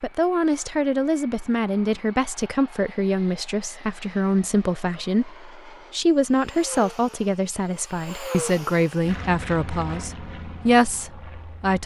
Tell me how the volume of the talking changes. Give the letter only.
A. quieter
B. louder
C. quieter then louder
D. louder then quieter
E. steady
E.